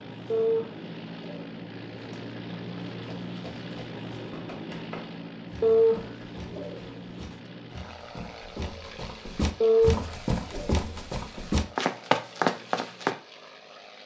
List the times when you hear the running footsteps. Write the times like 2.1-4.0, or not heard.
2.9-13.2.